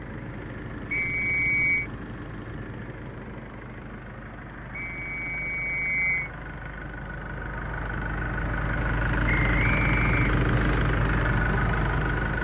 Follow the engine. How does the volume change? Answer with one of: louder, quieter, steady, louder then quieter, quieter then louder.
louder.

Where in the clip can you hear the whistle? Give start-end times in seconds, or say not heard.
0.9-1.9, 4.8-6.3, 9.4-10.8.